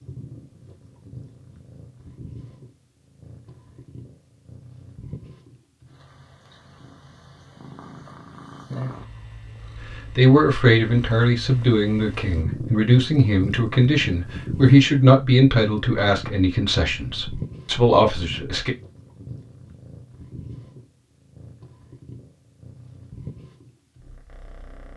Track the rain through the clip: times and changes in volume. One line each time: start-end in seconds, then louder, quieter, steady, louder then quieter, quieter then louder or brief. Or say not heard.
not heard.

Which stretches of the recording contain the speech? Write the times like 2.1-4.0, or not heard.
10.2-18.7.